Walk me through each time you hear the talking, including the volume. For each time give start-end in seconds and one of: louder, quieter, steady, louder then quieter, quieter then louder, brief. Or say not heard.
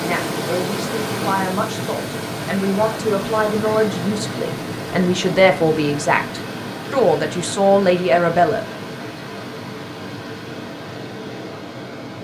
0.0-8.6 louder.